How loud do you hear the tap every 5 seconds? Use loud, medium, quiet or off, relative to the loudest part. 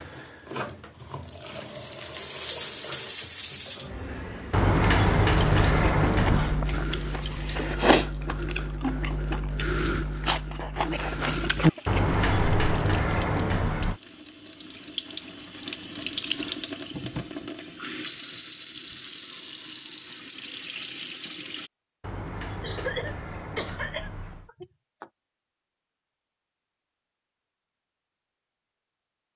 loud, loud, medium, loud, loud, off.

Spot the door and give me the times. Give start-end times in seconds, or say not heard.
4.5-6.7, 11.8-14.0, 22.0-24.5.